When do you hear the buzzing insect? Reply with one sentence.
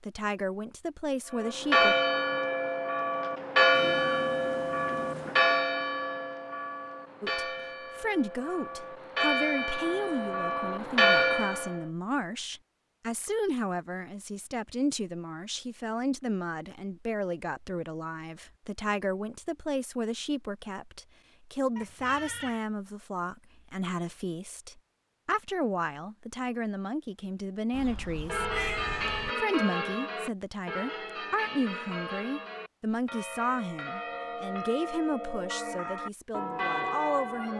You can't hear the buzzing insect here.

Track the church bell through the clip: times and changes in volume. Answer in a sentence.
You can hear the church bell from 1.3 to 11.8 s, getting quieter then louder; and from 28.2 to 37.5 s, getting quieter then louder.